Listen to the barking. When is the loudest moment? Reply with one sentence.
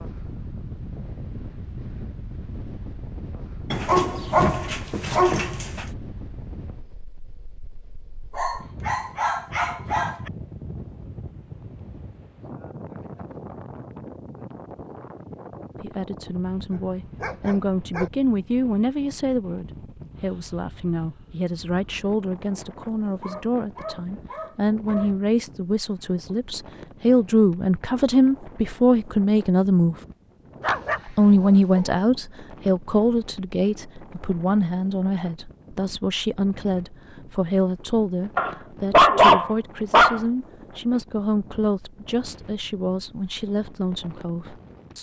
The volume of the barking peaks at 39 seconds.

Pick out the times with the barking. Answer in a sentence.
You can hear the barking from 3.7 to 5.8 s, from 8.3 to 10.3 s, from 16.7 to 18.1 s, from 23.2 to 25.1 s, from 30.6 to 31.9 s and from 38.4 to 40.2 s.